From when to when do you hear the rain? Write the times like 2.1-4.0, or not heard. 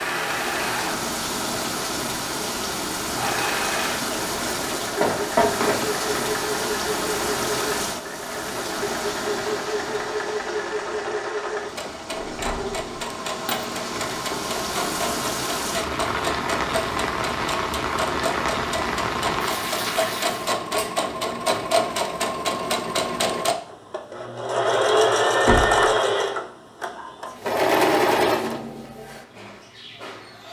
0.0-20.6.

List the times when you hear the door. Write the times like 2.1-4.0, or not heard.
4.7-5.8, 12.1-13.1, 25.4-25.9.